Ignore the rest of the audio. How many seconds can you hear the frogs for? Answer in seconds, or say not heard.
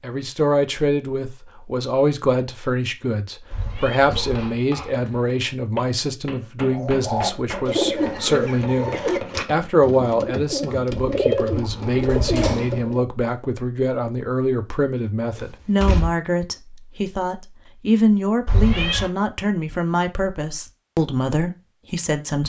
not heard.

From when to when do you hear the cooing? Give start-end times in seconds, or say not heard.
6.7-13.1.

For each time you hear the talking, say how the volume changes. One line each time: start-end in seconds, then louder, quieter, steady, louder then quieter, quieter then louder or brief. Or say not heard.
0.0-22.4 steady.